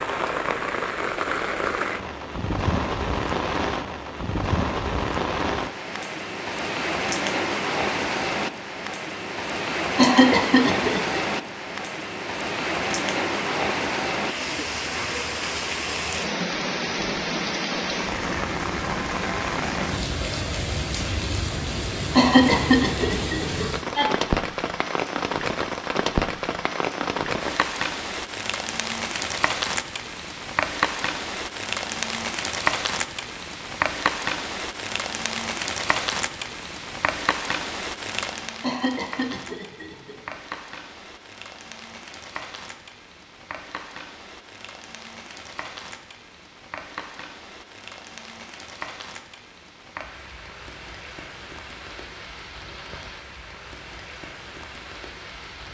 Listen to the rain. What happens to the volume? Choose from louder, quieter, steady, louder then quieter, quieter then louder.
quieter.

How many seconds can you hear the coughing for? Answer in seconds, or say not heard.
5 s.